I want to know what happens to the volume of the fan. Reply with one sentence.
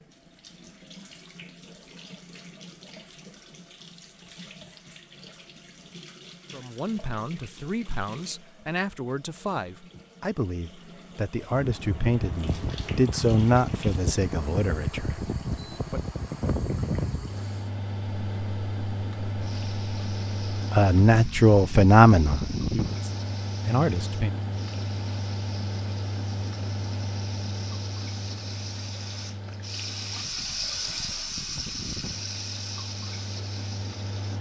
The loudness of the fan goes down.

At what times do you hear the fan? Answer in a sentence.
You can hear the fan from 11.5 to 34.3 s.